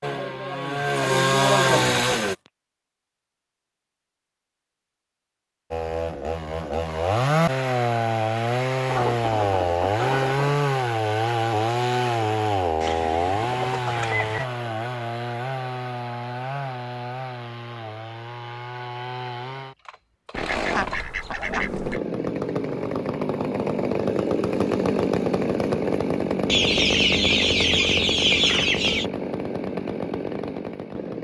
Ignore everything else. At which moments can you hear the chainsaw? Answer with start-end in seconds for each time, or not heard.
0.0-2.4, 5.7-31.1.